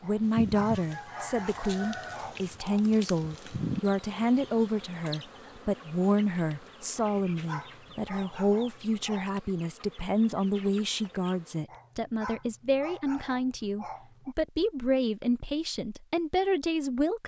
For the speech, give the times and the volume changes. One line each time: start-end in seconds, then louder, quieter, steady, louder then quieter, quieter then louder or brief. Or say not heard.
0.0-17.2 steady.